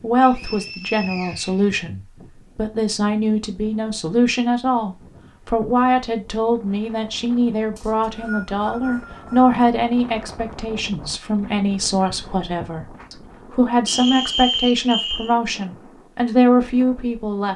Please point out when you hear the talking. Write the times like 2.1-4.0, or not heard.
0.0-17.5.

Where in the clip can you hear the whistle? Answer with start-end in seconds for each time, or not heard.
0.2-1.7, 7.8-9.6, 13.8-15.3.